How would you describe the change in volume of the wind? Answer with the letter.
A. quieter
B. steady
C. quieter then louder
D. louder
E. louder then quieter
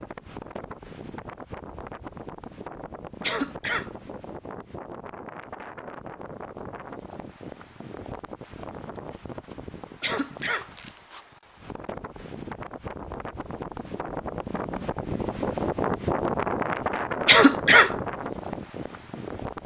D.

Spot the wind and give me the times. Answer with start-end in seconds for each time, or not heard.
0.0-19.6.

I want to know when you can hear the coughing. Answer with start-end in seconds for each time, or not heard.
3.2-3.9, 10.0-10.7, 17.2-17.9.